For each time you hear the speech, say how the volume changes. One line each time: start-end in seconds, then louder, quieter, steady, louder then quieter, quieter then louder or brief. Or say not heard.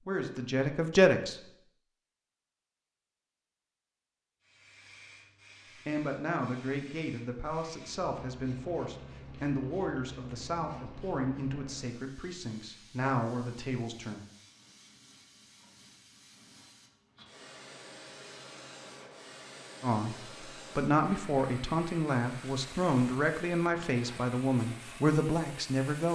0.1-1.4 brief
5.8-14.2 steady
19.8-26.1 steady.